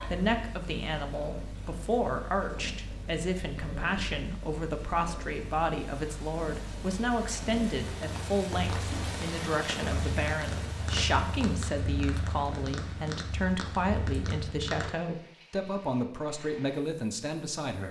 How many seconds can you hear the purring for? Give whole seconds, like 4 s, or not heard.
15 s.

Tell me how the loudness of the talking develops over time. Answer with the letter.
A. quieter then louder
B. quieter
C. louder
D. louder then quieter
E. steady
E.